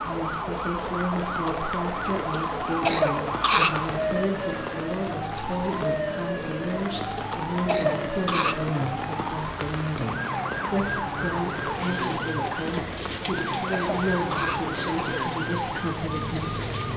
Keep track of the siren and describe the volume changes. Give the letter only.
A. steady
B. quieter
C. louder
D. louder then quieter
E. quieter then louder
A.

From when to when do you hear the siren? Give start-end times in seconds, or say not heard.
0.0-16.9.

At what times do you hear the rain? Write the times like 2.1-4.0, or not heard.
0.0-16.9.